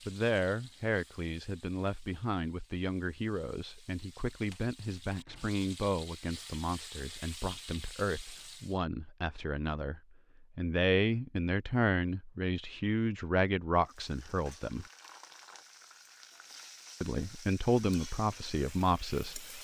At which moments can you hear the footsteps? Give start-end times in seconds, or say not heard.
not heard.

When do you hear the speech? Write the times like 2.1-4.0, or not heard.
0.1-14.8, 17.0-19.4.